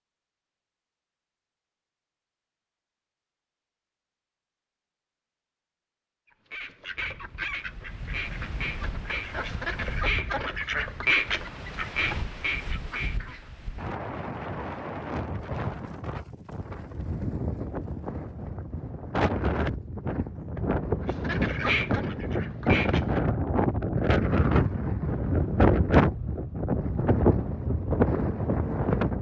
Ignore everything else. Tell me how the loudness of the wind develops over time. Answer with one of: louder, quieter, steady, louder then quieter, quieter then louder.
louder.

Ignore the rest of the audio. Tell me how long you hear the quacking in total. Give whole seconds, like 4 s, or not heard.
9 s.